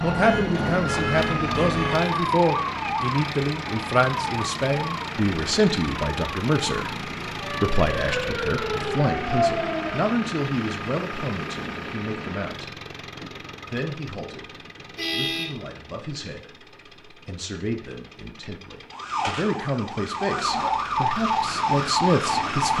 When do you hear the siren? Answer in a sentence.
You can hear the siren from 0.0 to 10.1 s and from 18.9 to 22.7 s.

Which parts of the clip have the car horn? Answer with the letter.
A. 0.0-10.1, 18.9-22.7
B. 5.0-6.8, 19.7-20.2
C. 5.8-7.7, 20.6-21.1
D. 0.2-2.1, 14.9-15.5
D.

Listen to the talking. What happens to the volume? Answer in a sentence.
The volume of the talking goes down, then up.